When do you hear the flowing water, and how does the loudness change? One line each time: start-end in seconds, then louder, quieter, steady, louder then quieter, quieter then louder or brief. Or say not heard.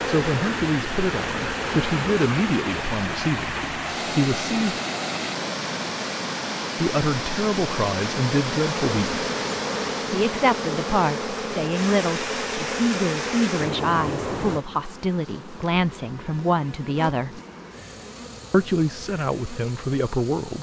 0.0-14.7 steady.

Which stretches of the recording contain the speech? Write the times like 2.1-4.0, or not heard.
0.1-4.8, 6.8-9.2, 10.1-17.4, 18.5-20.5.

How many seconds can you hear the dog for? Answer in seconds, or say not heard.
not heard.